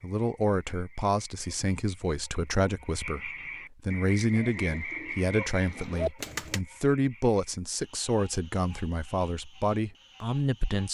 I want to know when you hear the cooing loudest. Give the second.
6 s.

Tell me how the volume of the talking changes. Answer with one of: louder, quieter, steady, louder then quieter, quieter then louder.
steady.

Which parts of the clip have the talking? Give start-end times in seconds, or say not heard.
0.0-10.9.